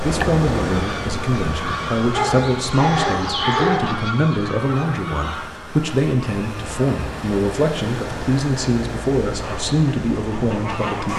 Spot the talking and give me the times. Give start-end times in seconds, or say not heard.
0.0-11.1.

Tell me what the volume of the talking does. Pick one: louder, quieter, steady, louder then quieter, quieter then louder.
steady.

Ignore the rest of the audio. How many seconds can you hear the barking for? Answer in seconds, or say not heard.
2 s.